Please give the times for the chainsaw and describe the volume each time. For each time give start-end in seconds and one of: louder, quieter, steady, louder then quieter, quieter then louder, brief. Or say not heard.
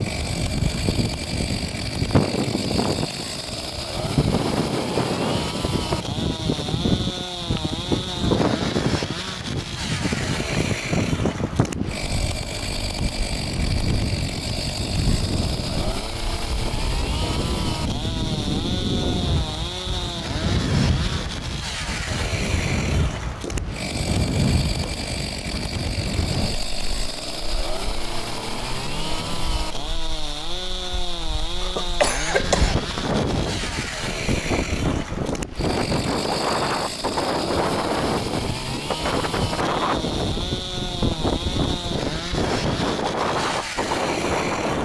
0.0-44.8 steady.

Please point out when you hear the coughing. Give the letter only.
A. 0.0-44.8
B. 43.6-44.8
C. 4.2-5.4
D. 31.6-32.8
D.